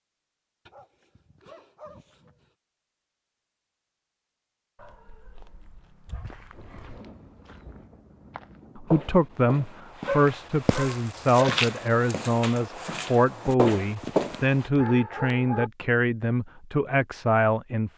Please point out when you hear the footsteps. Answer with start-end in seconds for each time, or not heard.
6.0-14.7.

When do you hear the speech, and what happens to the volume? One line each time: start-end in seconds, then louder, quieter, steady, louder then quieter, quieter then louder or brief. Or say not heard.
8.8-17.9 steady.